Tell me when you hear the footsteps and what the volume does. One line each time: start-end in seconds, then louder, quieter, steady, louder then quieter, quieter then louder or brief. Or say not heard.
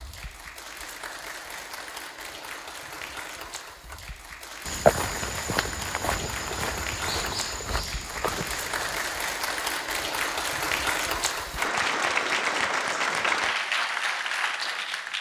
4.7-9.2 steady.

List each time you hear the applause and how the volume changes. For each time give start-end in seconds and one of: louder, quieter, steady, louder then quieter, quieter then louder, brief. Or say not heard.
0.0-15.1 louder.